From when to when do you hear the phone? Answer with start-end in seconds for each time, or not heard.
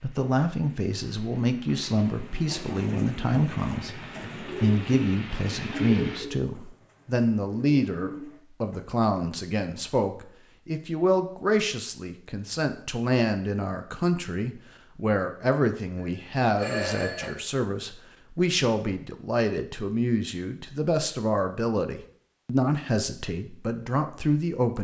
15.9-17.3.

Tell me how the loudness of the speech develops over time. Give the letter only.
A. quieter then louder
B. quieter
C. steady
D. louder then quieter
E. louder
C.